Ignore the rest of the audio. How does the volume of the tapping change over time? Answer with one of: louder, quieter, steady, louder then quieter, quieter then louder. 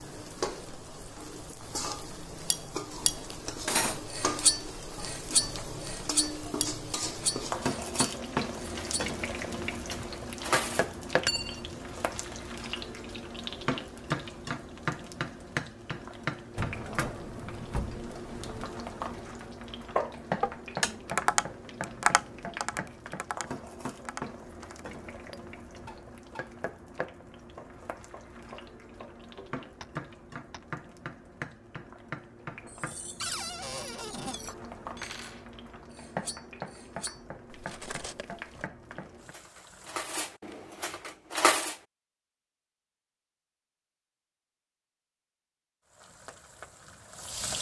quieter.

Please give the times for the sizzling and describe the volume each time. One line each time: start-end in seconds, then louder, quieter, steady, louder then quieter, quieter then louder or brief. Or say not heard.
0.0-40.4 quieter
45.9-47.5 brief.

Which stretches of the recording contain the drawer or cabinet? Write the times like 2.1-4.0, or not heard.
16.6-18.8, 33.2-34.4.